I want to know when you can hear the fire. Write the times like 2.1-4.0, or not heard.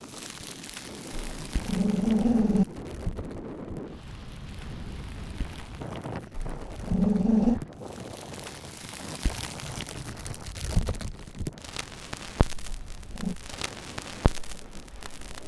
0.0-15.4.